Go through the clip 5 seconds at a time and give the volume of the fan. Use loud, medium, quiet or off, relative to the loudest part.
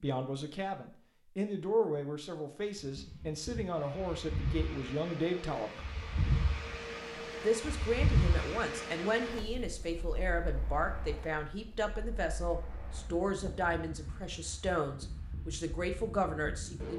medium, loud, quiet, medium.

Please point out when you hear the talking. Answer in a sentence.
You can hear the talking from 0.0 to 5.9 s and from 7.4 to 16.9 s.